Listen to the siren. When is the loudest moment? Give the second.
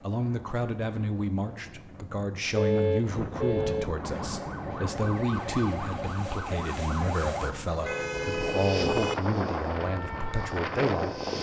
7 s.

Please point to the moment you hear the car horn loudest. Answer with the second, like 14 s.
3 s.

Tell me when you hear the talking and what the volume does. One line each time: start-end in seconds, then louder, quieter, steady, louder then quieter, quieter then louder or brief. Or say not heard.
0.0-11.2 steady.